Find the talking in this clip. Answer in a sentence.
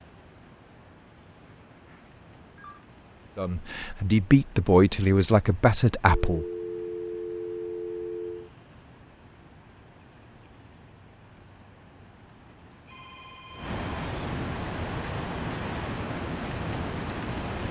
The talking can be heard from 3.4 to 6.5 s.